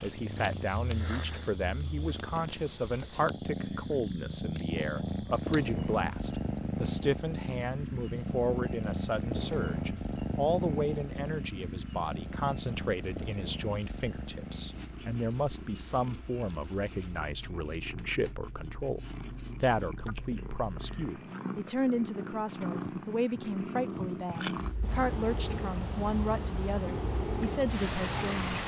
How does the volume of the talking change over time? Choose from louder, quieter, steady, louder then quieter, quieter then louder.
steady.